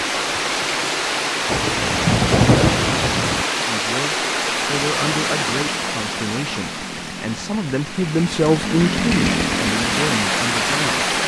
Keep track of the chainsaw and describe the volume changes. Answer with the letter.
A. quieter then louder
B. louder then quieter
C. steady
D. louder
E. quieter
B.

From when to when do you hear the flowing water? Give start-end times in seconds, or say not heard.
0.0-11.2.